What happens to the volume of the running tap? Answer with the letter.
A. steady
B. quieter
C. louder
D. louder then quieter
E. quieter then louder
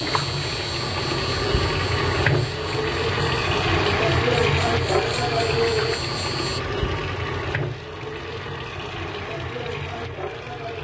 B.